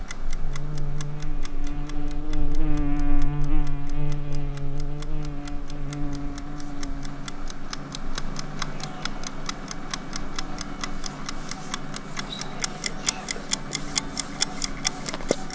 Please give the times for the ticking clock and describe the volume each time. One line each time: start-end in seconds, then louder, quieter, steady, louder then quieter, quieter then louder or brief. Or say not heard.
0.0-15.5 louder.